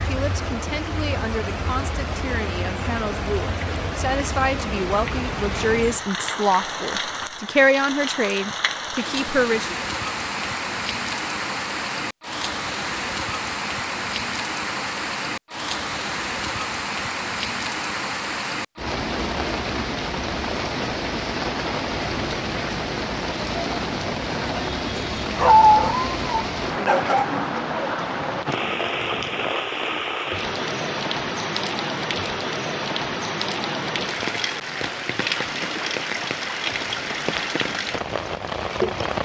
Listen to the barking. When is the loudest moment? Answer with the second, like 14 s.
26 s.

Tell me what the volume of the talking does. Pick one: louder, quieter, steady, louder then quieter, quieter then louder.
louder.